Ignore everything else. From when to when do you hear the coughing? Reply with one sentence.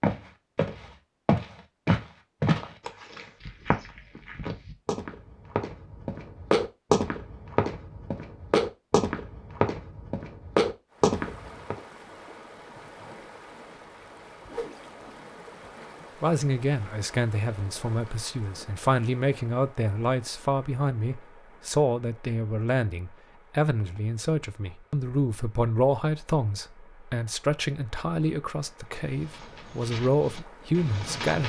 You can't hear the coughing here.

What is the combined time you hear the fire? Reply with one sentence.
You can't hear the fire here.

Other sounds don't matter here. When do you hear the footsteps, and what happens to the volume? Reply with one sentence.
The footsteps can be heard from 0.0 to 11.8 s, getting quieter then louder; and briefly from 29.0 to 31.4 s.